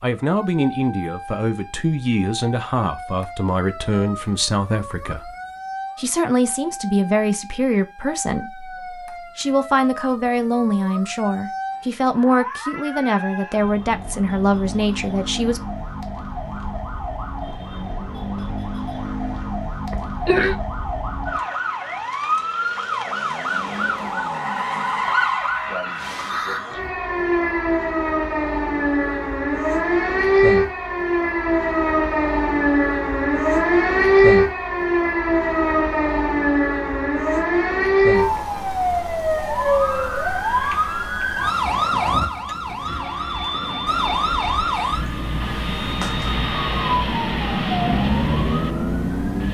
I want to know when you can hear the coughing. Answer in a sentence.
You can hear the coughing from 19.9 to 20.6 s.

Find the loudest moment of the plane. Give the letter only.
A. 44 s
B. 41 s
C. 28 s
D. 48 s
D.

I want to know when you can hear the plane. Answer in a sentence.
You can hear the plane from 42.9 to 49.4 s.